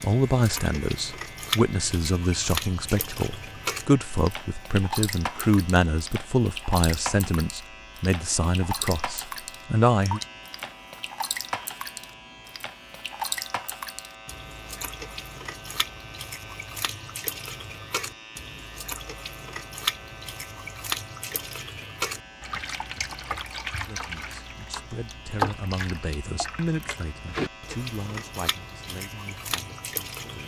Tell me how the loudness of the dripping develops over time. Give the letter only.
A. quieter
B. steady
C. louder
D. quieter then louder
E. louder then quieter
B.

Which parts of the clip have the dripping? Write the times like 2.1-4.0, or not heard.
0.0-30.4.